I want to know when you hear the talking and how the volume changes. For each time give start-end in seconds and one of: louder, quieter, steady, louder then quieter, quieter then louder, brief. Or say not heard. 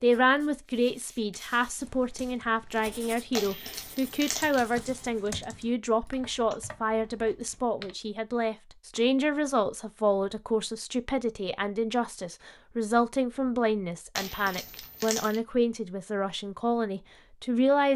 0.0-17.9 steady.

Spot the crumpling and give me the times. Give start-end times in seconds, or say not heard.
3.4-4.7, 14.2-15.4.